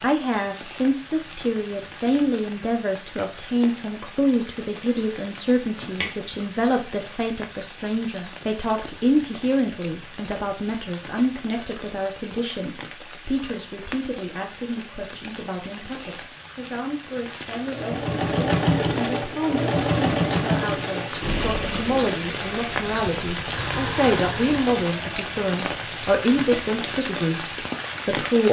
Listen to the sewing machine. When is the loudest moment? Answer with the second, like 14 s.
20 s.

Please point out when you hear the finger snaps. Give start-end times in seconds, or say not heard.
5.8-6.4.